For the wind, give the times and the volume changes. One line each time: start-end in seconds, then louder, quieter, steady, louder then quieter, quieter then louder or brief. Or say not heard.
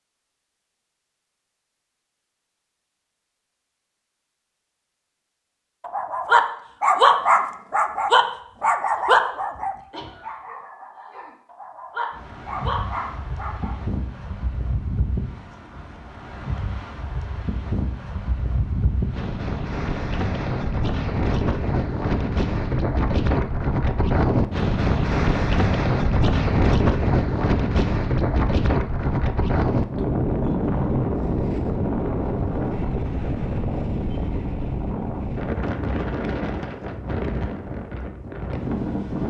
12.1-39.2 louder then quieter.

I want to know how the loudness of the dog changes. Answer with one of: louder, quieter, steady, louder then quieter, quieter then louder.
quieter then louder.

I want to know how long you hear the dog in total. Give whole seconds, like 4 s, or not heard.
8 s.